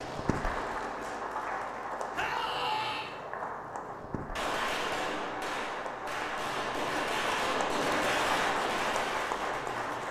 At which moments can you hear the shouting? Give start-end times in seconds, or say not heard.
2.1-3.1.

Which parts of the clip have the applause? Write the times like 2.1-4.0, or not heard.
0.0-10.0.